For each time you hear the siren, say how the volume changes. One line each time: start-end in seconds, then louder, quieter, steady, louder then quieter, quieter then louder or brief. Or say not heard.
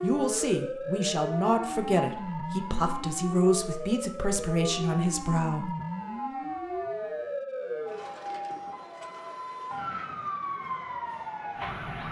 0.0-12.0 steady.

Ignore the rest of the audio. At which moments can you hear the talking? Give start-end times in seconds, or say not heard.
0.0-5.7.